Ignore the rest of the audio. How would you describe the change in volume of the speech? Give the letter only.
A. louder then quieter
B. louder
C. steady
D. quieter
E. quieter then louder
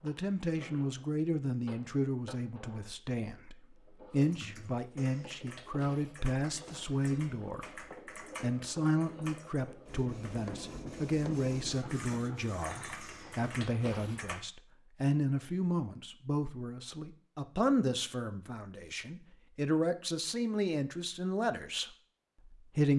C.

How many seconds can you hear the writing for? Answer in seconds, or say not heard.
not heard.